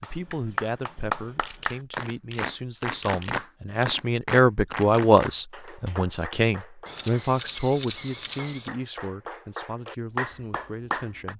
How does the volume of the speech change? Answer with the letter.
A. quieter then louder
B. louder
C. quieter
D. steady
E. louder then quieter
E.